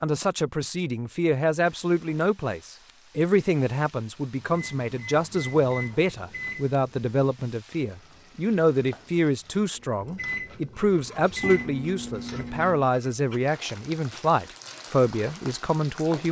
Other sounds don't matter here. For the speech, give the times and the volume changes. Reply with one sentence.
You can hear the speech from 0.0 to 16.2 s, at a steady volume.